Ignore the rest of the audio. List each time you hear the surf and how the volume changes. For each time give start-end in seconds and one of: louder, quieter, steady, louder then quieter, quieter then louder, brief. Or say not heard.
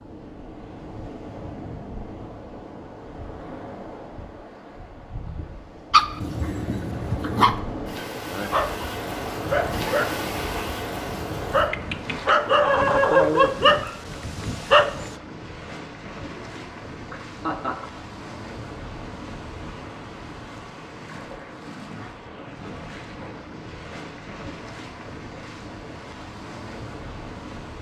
0.0-27.7 louder then quieter.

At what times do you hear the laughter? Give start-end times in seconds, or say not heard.
6.4-7.3, 16.3-17.9.